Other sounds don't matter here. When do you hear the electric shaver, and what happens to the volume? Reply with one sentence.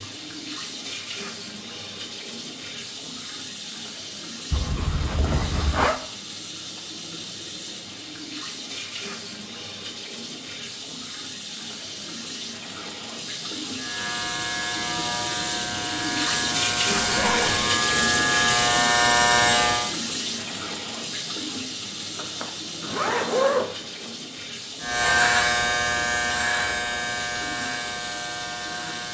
You can hear the electric shaver from 13.8 to 19.9 s, getting louder; and from 24.8 to 29.0 s, getting quieter.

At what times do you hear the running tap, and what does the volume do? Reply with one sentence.
The running tap can be heard from 0.0 to 29.0 s, getting louder then quieter.